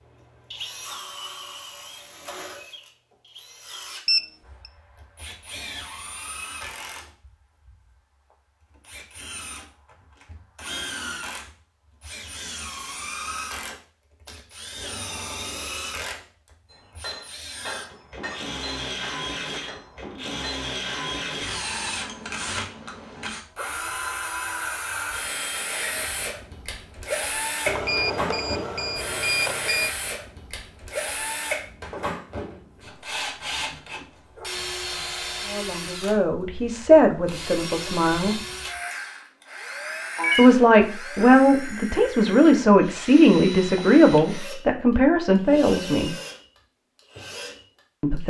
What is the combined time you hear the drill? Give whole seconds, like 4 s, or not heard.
48 s.